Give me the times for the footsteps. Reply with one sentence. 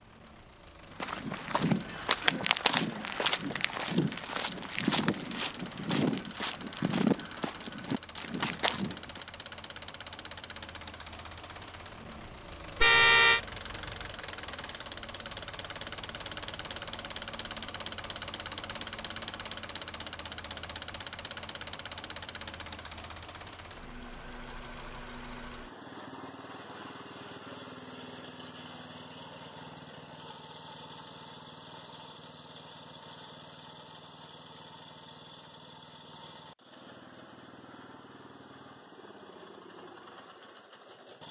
The footsteps can be heard from 1.0 to 9.2 s.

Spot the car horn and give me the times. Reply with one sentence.
The car horn can be heard from 12.8 to 13.4 s.